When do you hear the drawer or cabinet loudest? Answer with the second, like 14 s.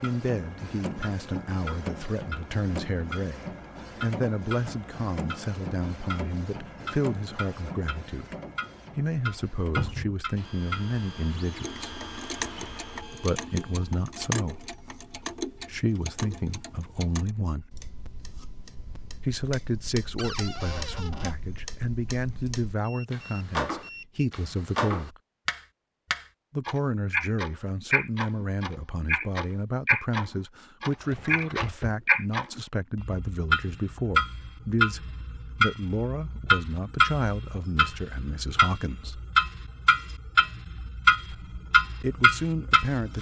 10 s.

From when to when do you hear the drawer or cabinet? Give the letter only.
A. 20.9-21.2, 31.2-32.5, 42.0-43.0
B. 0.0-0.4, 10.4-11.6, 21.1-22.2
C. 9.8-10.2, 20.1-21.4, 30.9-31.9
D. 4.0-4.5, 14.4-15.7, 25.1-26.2
C.